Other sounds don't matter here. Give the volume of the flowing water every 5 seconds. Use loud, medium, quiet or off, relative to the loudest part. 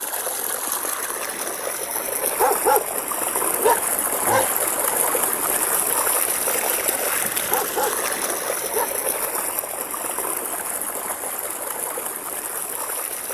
loud, loud, medium.